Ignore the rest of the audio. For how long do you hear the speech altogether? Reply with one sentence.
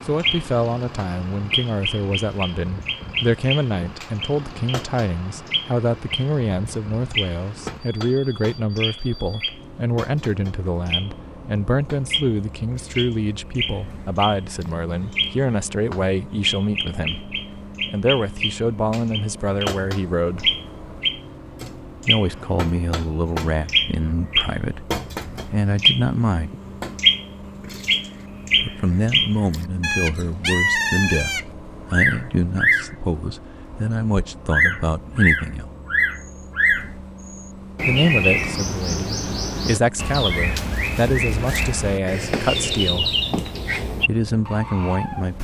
You can hear the speech for 39 seconds altogether.